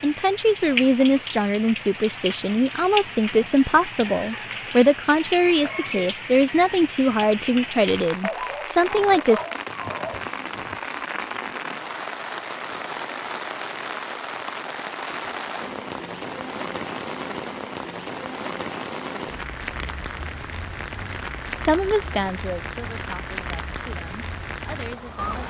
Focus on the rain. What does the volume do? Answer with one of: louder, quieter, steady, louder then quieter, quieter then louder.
steady.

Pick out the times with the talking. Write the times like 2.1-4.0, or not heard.
0.0-9.4, 21.6-25.4.